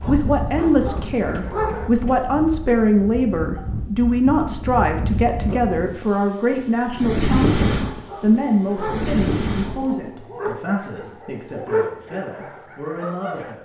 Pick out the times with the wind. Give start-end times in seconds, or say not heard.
0.0-9.9.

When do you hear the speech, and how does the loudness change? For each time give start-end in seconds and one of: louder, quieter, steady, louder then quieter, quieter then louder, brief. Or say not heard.
0.1-13.6 quieter.